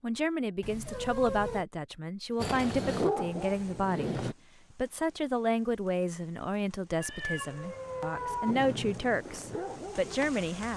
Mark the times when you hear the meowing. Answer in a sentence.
You can hear the meowing from 0.6 to 1.6 s and from 7.0 to 8.6 s.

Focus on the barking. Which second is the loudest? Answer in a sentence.
The volume of the barking peaks at 3 seconds.